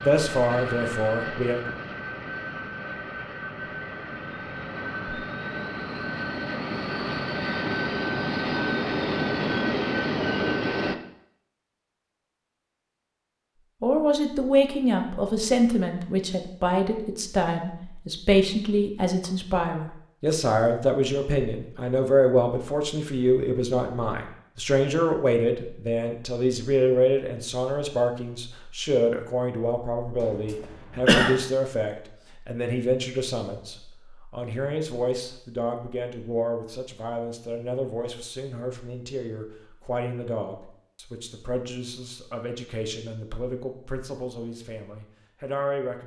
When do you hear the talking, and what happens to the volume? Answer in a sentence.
You can hear the talking briefly from 0.0 to 1.6 s; and from 13.8 to 46.0 s, getting quieter.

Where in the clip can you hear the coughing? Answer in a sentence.
The coughing can be heard from 30.2 to 31.4 s.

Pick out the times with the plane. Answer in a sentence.
The plane can be heard from 0.0 to 10.9 s.